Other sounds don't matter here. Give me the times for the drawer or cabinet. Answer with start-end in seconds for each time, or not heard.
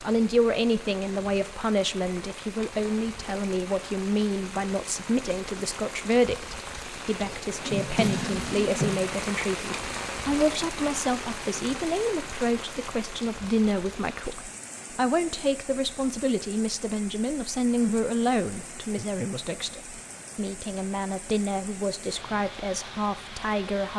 7.7-8.9.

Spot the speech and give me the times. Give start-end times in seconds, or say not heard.
0.0-23.9.